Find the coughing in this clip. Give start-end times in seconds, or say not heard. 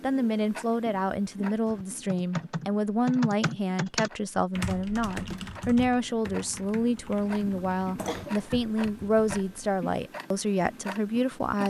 8.0-8.6.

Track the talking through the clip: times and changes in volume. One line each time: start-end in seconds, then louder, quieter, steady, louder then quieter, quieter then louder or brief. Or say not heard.
0.0-11.6 steady.